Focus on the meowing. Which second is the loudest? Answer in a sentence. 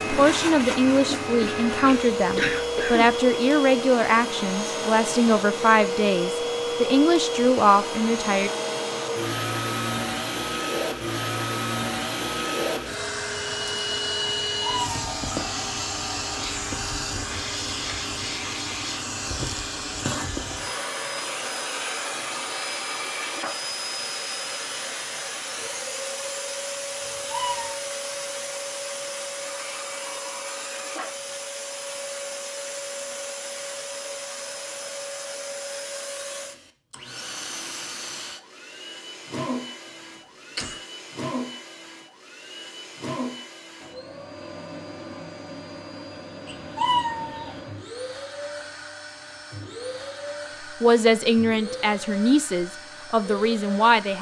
The volume of the meowing peaks at 47 seconds.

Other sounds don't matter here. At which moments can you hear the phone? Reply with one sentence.
You can't hear the phone here.